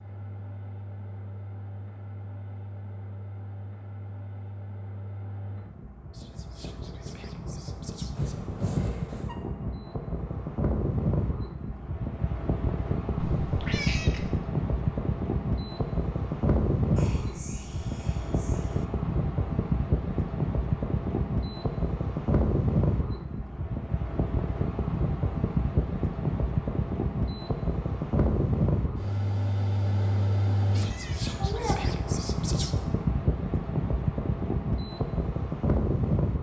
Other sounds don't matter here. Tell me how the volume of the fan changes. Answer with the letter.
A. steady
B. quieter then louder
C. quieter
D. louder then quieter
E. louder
E.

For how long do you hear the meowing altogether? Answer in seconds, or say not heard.
3 s.